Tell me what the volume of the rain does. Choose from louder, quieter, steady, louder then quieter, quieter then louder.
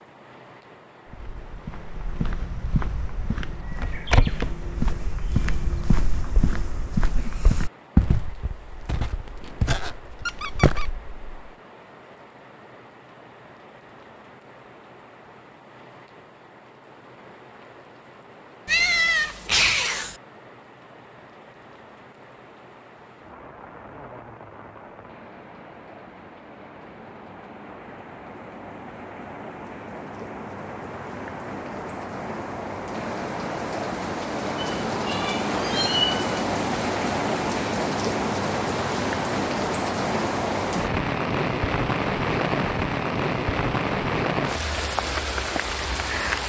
louder.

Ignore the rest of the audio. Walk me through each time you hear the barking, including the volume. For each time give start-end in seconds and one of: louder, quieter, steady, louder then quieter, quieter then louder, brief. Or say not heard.
not heard.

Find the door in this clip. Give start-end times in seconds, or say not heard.
not heard.